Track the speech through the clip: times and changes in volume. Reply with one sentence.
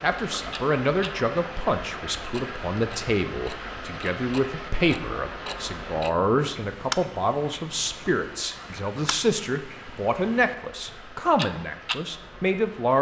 The speech can be heard from 0.0 to 12.9 s, at a steady volume.